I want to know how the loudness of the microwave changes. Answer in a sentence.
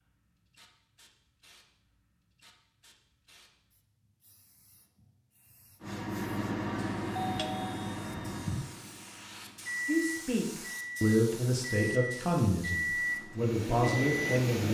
The loudness of the microwave goes down, then up.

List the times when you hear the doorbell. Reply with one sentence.
The doorbell can be heard from 7.2 to 8.7 s.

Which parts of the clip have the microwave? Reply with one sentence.
The microwave can be heard from 5.8 to 14.6 s.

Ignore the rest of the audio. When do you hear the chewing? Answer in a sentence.
The chewing can't be heard in this clip.